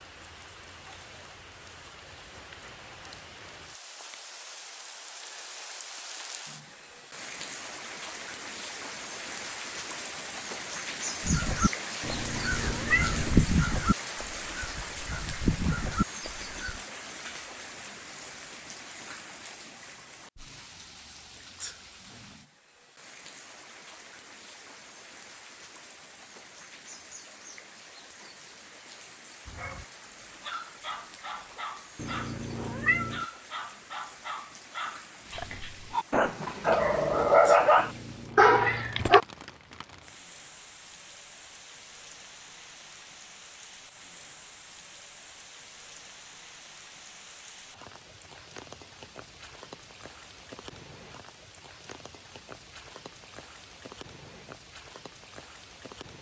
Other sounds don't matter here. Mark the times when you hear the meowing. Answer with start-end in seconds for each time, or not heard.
12.0-13.4, 31.9-33.2, 37.8-39.0.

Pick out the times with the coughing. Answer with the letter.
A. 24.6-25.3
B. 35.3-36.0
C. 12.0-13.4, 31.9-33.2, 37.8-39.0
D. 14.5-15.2
B.